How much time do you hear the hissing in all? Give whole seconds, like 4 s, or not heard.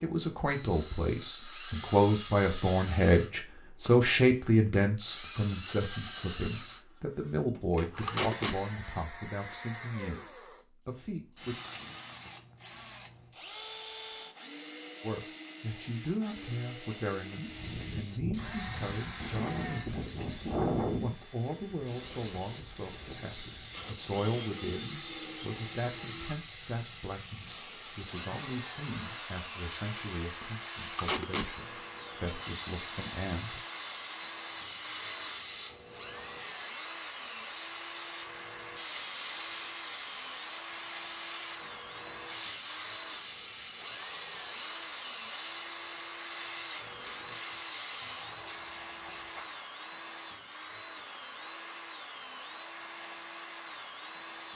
32 s.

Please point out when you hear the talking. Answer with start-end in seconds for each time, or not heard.
0.0-11.6, 15.0-33.6.